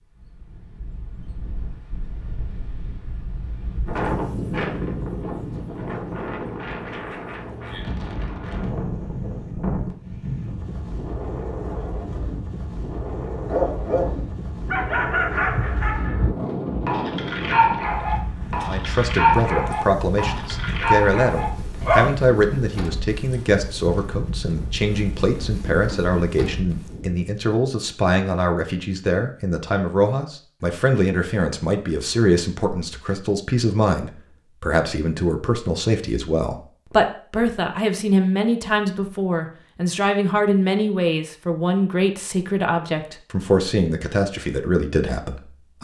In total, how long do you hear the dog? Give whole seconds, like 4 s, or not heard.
9 s.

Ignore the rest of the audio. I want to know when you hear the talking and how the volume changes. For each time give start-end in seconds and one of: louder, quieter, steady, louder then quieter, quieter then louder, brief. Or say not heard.
18.6-45.7 steady.